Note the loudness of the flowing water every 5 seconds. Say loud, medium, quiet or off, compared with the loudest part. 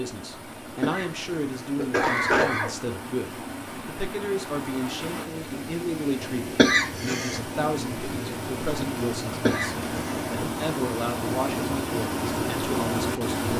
medium, medium, loud.